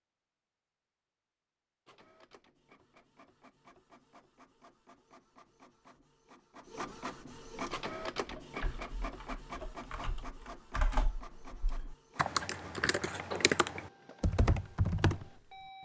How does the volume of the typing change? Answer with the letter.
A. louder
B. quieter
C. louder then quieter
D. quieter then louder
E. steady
A.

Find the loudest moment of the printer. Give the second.
8 s.